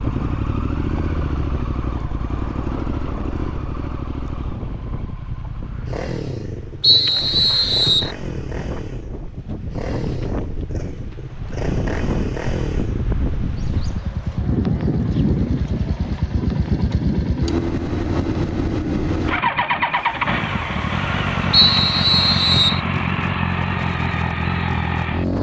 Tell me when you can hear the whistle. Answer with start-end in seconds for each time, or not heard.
6.8-8.1, 21.5-22.8.